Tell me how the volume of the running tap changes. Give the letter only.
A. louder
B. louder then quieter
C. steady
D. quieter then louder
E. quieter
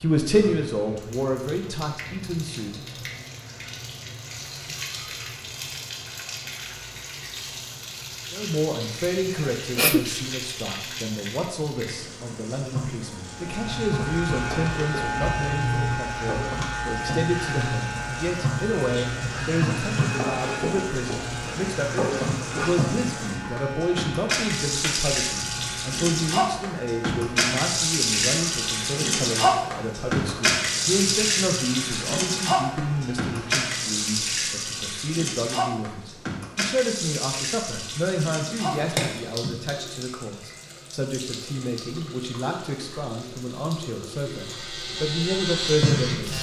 B.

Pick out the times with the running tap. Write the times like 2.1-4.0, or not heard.
0.0-46.3.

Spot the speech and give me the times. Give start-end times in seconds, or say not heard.
0.0-3.1, 8.3-46.3.